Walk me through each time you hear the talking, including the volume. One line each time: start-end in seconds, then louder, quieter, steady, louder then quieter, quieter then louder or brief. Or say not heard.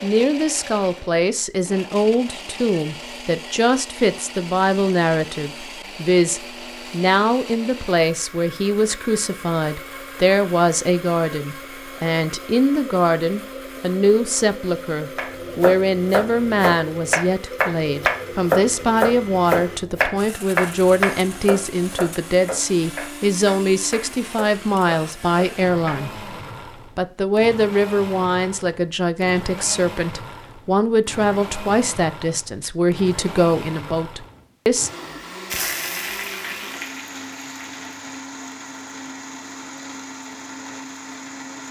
0.0-26.2 steady
26.9-34.9 steady.